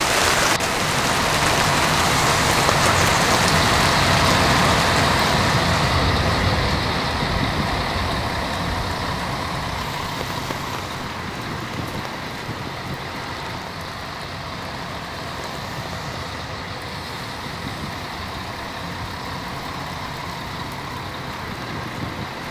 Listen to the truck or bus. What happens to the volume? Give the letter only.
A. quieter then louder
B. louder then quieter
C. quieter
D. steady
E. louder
C.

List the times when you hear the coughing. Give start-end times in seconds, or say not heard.
not heard.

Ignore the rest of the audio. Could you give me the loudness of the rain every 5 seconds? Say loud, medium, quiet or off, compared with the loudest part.
loud, medium, quiet, quiet, quiet.